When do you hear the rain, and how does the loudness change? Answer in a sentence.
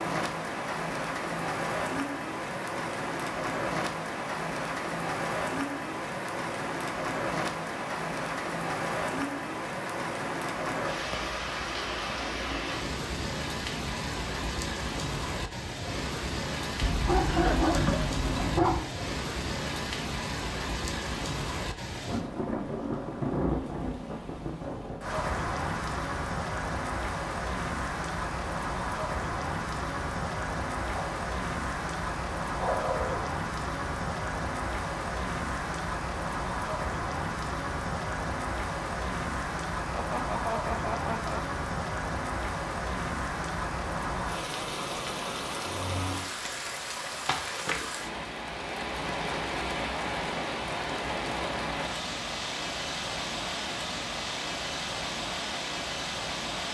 The rain can be heard from 0.0 to 56.6 s, at a steady volume.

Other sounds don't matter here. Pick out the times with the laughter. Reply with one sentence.
The laughter can be heard from 17.2 to 18.1 s and from 39.9 to 41.4 s.